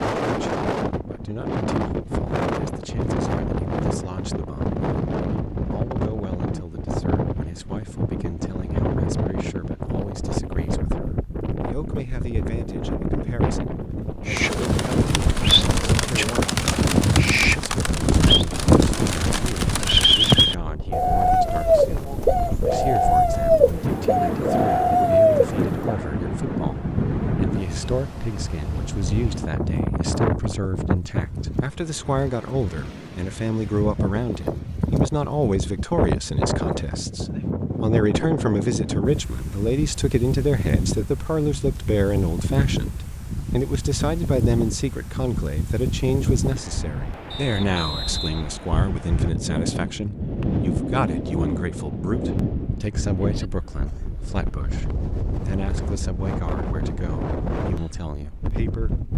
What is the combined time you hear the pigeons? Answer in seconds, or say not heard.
12 s.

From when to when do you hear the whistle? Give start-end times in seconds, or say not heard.
47.3-49.3.